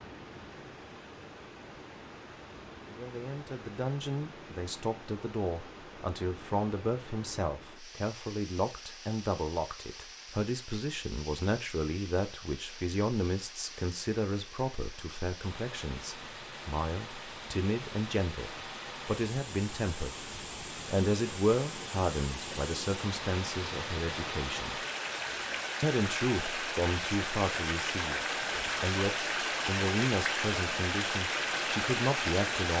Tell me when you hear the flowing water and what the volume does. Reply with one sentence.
You can hear the flowing water from 0.0 to 32.7 s, getting louder.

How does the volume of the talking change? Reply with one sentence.
The loudness of the talking stays about the same.